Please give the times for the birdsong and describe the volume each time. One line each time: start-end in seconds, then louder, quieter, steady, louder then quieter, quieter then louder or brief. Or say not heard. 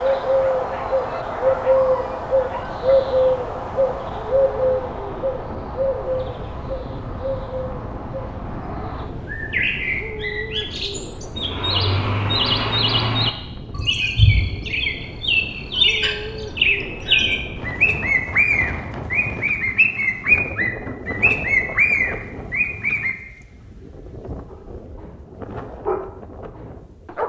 0.0-23.1 quieter then louder.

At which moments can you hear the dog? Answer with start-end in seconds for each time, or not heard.
0.0-3.0, 24.5-27.2.